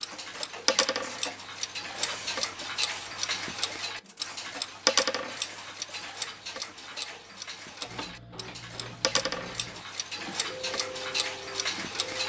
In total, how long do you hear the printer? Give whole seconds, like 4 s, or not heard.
12 s.